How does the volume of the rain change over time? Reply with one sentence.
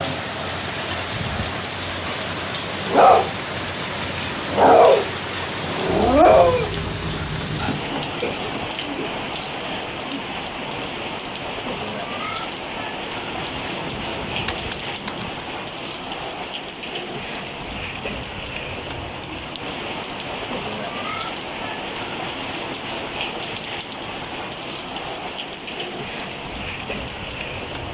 The volume of the rain stays about the same.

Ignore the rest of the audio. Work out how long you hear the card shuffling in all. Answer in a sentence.
The card shuffling can be heard for 2 seconds in total.